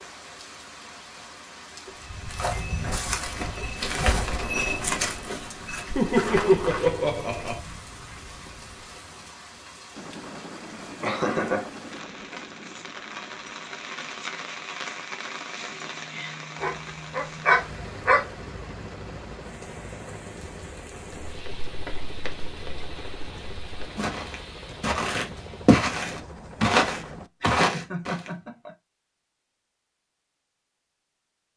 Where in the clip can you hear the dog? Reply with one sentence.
You can hear the dog from 16.6 to 18.2 s.